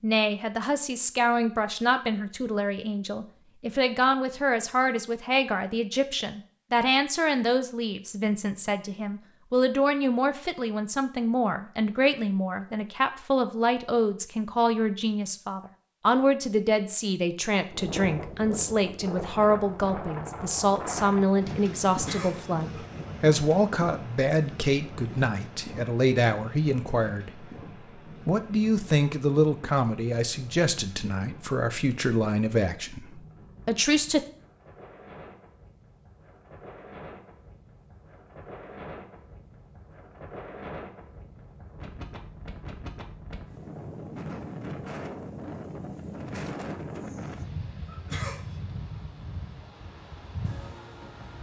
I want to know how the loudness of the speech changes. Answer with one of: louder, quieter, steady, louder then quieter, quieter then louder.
steady.